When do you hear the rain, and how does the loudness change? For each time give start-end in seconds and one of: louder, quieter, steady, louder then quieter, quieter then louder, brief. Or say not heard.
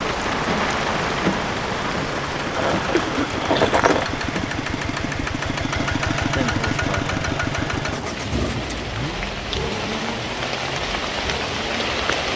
0.0-12.3 quieter then louder.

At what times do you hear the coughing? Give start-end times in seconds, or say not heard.
3.0-3.8.